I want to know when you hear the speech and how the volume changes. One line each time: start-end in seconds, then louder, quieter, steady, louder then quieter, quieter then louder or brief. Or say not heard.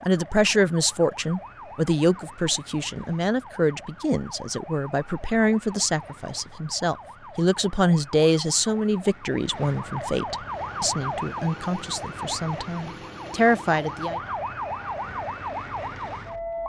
0.0-14.2 steady.